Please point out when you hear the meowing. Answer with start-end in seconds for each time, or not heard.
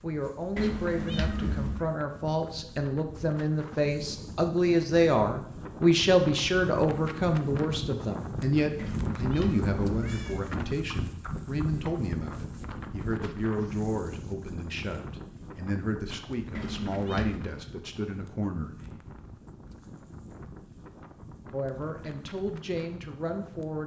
0.6-1.9, 8.8-10.4, 16.6-17.4.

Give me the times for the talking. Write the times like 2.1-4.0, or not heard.
0.0-19.0, 21.5-23.8.